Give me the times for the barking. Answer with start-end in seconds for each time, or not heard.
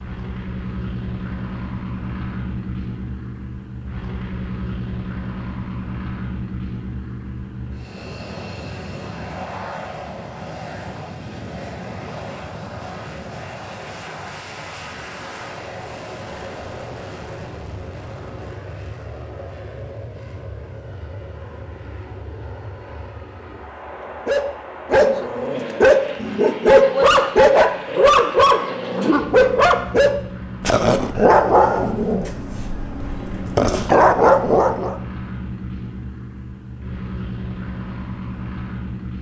24.2-35.0.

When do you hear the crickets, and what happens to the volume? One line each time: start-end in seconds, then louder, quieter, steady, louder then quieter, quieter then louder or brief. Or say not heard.
not heard.